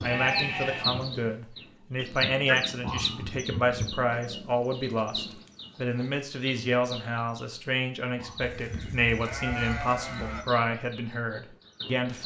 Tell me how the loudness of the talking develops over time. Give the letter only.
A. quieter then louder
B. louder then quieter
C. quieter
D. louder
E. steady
E.